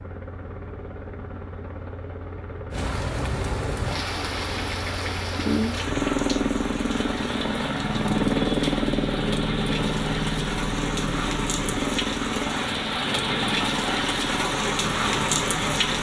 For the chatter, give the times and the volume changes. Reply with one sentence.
The chatter can't be heard in this clip.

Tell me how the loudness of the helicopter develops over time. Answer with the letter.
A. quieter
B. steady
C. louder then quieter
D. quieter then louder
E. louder
C.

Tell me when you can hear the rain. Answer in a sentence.
The rain can be heard from 2.7 to 15.9 s.